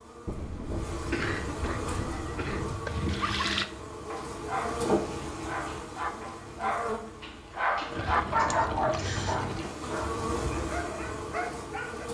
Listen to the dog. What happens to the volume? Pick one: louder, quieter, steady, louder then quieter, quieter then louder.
louder then quieter.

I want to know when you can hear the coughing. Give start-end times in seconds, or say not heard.
0.2-2.8, 8.4-9.4.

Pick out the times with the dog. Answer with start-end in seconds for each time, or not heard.
1.8-12.1.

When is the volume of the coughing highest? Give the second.
1 s.